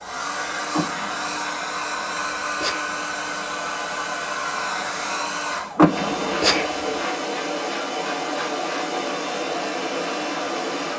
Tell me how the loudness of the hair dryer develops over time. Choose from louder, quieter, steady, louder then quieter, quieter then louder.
steady.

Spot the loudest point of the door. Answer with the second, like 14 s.
6 s.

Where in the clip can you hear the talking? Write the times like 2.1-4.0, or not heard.
not heard.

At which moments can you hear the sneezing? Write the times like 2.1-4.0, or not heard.
2.1-2.9, 6.0-6.7.